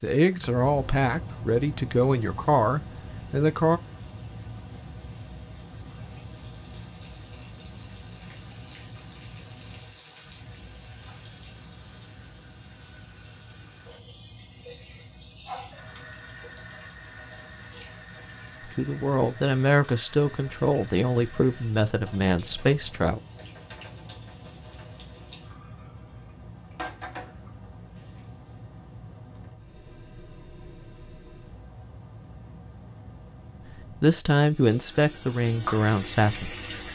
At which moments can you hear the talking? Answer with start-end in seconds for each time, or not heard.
0.0-3.8, 18.6-23.2, 33.6-36.9.